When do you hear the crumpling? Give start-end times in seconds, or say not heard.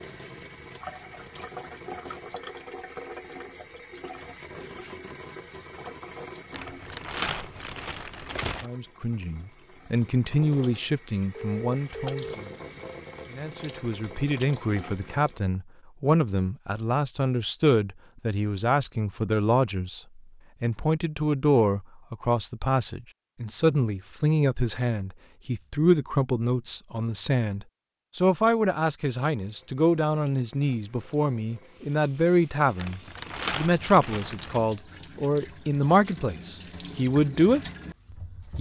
6.5-8.7, 32.8-34.6.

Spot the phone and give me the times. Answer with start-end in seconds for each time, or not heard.
11.3-12.4.